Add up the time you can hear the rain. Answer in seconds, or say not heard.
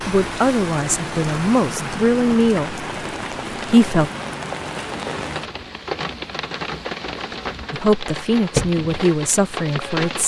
10 s.